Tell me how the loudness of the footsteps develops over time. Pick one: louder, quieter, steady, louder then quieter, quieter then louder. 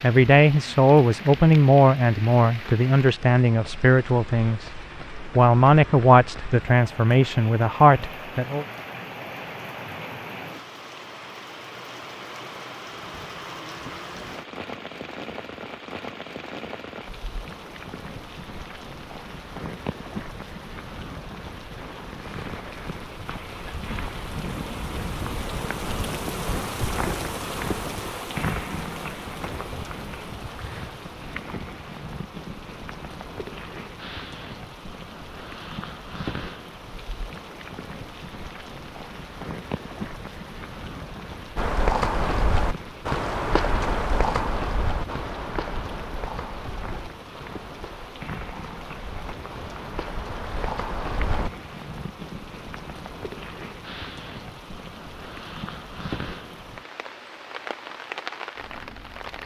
quieter then louder.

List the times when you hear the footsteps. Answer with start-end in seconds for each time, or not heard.
41.5-51.5.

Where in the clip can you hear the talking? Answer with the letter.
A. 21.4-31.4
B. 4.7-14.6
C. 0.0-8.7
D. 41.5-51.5
C.